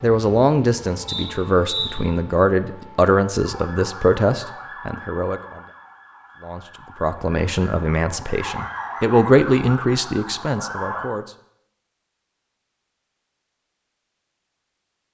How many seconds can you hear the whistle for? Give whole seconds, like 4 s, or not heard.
2 s.